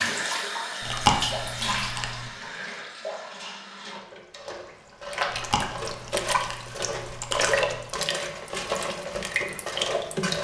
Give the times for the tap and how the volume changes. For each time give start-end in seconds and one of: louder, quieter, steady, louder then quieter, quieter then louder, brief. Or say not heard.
0.0-10.3 quieter then louder.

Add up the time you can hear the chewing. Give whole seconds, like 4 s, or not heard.
4 s.